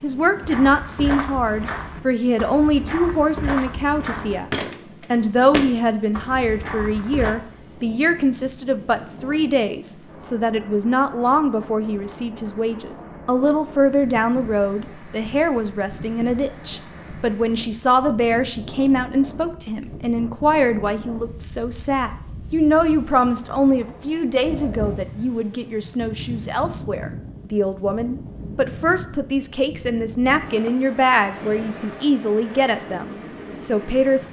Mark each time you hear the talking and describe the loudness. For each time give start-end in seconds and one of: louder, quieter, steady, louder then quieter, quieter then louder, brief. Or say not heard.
0.0-34.2 steady.